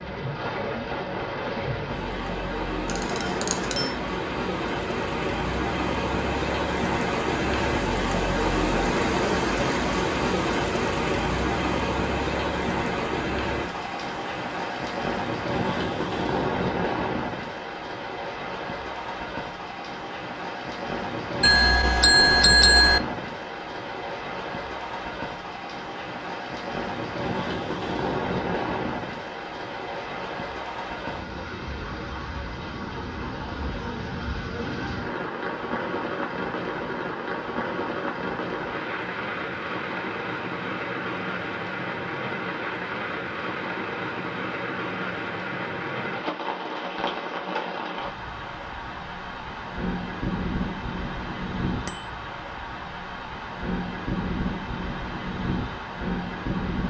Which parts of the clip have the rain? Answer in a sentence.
You can hear the rain from 0.0 to 56.8 s.